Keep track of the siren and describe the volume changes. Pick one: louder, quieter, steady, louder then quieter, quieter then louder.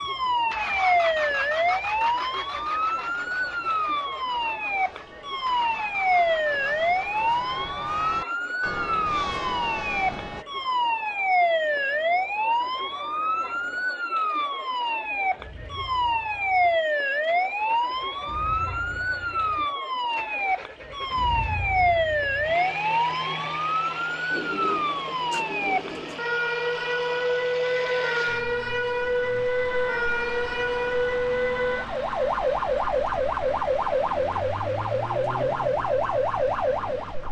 steady.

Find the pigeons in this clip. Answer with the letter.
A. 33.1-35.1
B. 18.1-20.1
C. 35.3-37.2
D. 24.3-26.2
D.